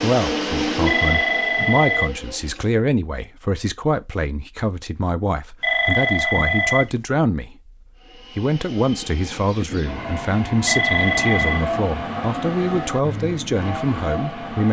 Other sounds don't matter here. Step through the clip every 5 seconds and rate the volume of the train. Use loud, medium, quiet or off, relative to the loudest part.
loud, medium, loud.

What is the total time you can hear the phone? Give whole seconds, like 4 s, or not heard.
4 s.